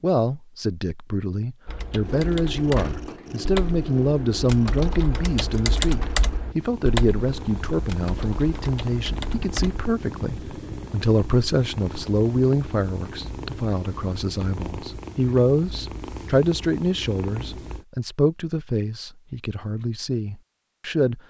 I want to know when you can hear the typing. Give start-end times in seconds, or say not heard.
1.6-9.9.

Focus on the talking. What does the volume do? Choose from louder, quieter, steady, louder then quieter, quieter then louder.
steady.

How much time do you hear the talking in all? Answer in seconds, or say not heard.
21 s.